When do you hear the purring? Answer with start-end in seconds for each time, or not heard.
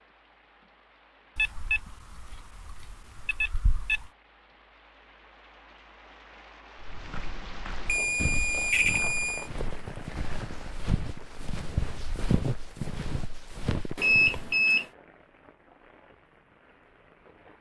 not heard.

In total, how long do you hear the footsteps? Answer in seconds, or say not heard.
8 s.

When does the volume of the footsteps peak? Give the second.
12 s.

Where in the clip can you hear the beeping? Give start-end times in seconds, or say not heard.
1.4-4.1, 7.8-9.4, 13.9-14.8.